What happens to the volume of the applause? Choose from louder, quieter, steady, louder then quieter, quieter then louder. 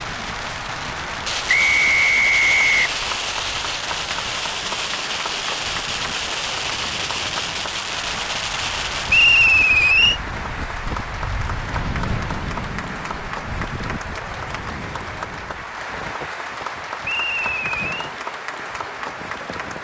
steady.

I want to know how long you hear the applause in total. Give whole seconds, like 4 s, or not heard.
20 s.